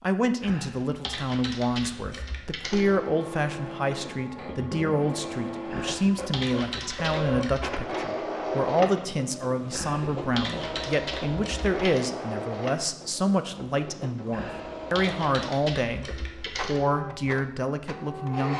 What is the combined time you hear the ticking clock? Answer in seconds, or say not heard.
not heard.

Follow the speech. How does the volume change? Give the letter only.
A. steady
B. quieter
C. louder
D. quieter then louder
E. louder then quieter
A.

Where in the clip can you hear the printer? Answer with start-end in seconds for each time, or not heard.
2.7-18.5.